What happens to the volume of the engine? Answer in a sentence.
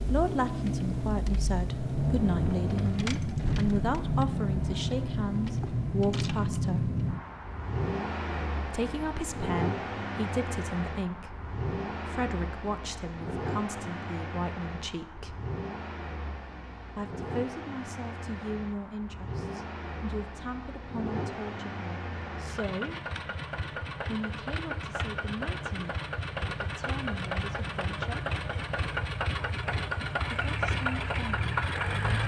The loudness of the engine goes down, then up.